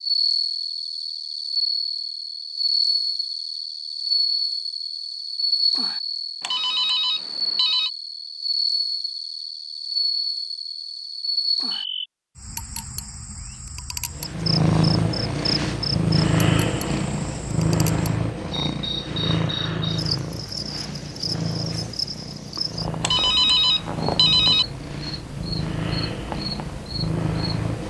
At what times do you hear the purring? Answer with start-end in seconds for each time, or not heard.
14.1-27.8.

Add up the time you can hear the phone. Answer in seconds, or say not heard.
3 s.